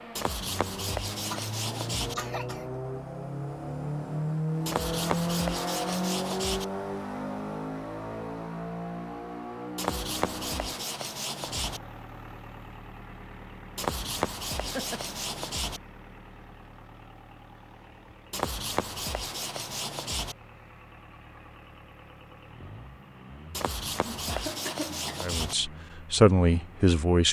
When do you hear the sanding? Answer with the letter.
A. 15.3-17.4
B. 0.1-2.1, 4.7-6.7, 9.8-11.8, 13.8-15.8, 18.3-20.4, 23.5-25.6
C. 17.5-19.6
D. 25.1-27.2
B.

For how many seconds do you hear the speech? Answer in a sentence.
You can hear the speech for 2 seconds altogether.